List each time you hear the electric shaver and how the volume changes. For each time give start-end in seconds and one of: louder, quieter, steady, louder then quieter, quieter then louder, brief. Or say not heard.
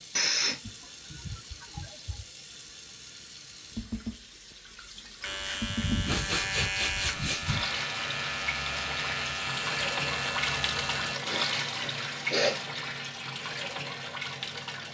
5.2-11.2 steady.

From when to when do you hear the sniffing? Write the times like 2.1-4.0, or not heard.
0.1-2.2, 5.7-7.7, 11.2-12.6.